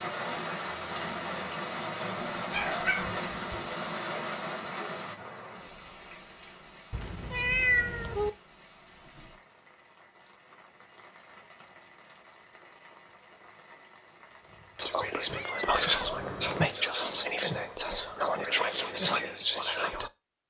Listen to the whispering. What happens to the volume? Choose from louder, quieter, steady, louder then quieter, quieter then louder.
steady.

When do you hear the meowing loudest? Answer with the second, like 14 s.
8 s.